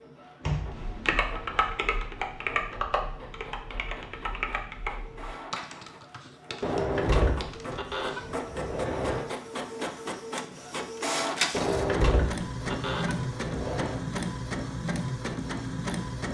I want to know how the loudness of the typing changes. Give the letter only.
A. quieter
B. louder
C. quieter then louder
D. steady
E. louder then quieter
A.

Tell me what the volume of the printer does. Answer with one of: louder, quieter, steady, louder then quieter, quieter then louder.
louder.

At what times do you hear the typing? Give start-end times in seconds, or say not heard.
0.7-8.3.